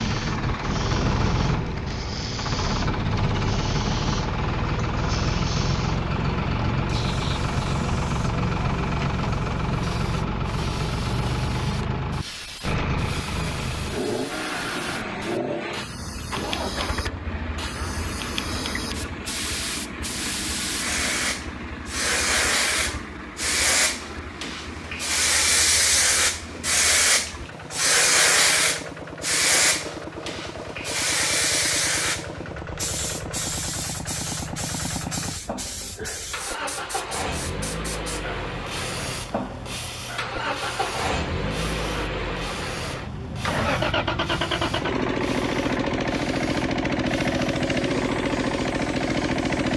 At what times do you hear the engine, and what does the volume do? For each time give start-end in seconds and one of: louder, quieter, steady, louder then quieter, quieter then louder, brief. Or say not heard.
0.0-49.7 quieter then louder.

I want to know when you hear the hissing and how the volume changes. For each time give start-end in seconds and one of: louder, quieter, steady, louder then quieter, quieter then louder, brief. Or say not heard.
0.0-49.7 louder then quieter.